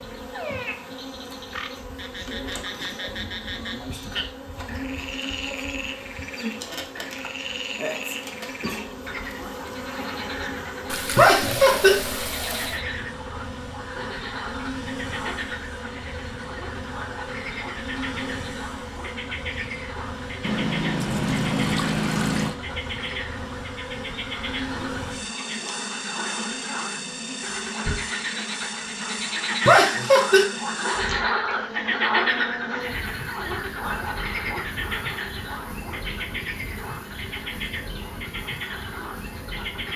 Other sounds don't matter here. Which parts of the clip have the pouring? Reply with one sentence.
You can hear the pouring from 10.8 to 12.8 s and from 20.4 to 22.6 s.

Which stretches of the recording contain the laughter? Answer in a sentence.
You can hear the laughter from 11.2 to 11.9 s and from 29.6 to 30.4 s.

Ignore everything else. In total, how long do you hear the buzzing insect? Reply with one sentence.
You can hear the buzzing insect for 40 seconds altogether.